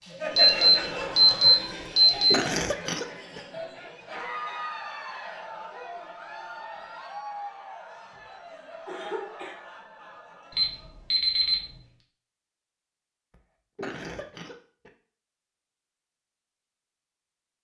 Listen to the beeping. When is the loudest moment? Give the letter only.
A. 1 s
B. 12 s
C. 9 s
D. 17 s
A.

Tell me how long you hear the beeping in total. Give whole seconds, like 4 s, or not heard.
3 s.